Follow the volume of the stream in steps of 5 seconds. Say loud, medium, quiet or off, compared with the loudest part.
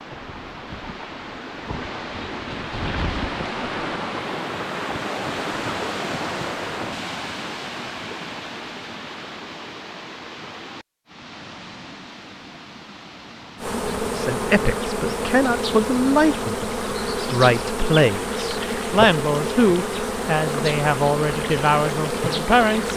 loud, loud, medium, medium, medium.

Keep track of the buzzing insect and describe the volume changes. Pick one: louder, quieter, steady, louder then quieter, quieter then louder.
steady.